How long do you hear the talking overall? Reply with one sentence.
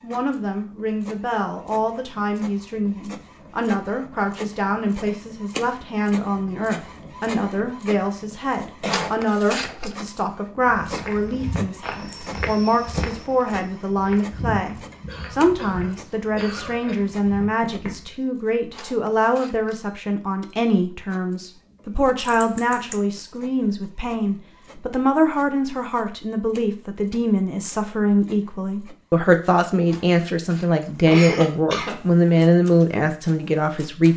You can hear the talking for 34 seconds altogether.